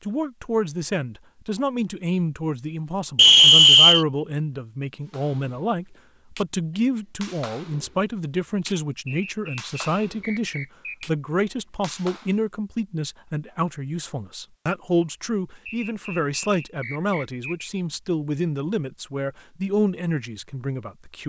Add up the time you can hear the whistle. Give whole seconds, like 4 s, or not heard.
5 s.